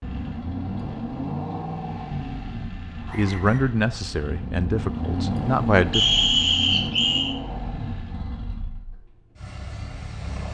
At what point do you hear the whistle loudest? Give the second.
6 s.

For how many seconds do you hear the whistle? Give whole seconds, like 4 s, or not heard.
2 s.